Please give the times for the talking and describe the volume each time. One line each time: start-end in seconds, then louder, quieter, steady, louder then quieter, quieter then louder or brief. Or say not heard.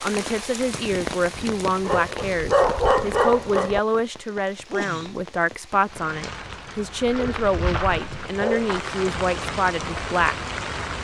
0.0-10.3 steady.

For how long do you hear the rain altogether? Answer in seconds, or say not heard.
11 s.